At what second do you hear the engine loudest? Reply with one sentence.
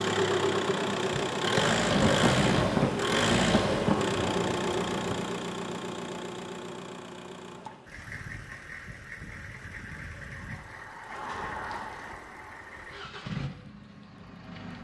The loudest moment of the engine is at 2 seconds.